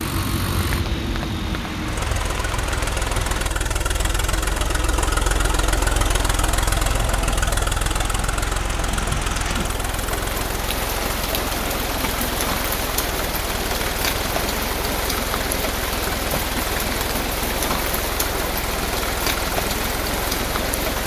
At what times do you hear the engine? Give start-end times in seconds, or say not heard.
0.0-21.0.